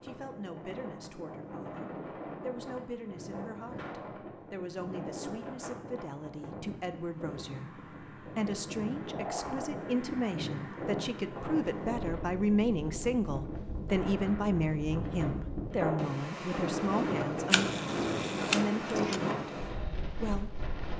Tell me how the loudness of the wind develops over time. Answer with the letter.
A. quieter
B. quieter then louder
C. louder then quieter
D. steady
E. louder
E.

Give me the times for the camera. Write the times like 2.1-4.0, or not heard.
17.5-19.2.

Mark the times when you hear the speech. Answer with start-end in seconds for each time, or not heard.
0.0-20.6.